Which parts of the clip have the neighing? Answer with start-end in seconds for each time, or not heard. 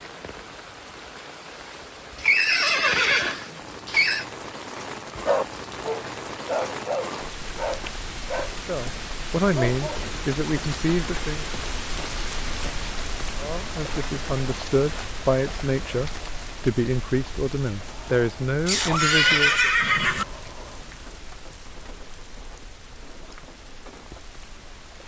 2.1-4.2, 18.6-20.2.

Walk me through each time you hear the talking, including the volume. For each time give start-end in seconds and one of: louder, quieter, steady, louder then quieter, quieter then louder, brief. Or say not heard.
8.6-11.4 brief
13.3-19.7 steady.